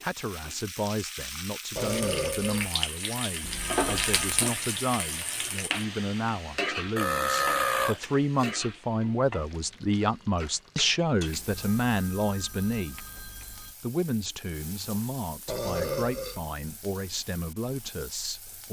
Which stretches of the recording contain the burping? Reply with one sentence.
You can hear the burping from 1.8 to 2.7 s, from 7.0 to 8.6 s and from 15.4 to 16.4 s.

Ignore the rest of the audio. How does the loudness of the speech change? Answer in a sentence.
The volume of the speech goes up, then down.